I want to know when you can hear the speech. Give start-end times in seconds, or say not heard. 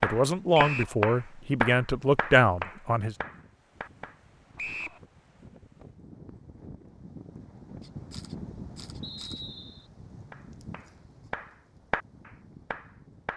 0.0-3.1.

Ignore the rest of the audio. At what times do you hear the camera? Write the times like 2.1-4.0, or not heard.
7.8-9.4.